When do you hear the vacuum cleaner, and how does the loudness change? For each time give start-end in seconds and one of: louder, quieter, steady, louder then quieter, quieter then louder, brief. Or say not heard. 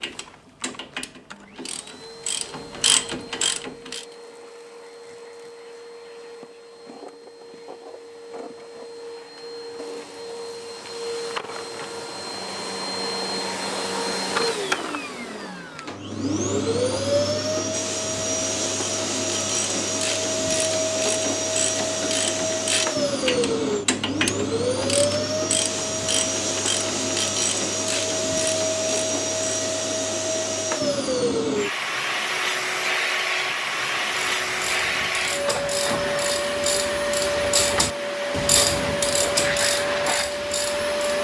0.0-41.1 louder.